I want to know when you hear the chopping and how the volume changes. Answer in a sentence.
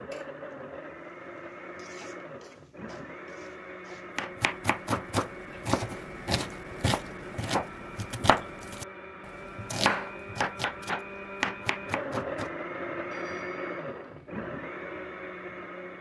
The chopping can be heard from 4.2 to 12.6 s, at a steady volume.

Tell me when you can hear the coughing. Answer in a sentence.
The coughing can't be heard in this clip.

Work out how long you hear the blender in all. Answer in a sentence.
The blender can be heard for 16 seconds in total.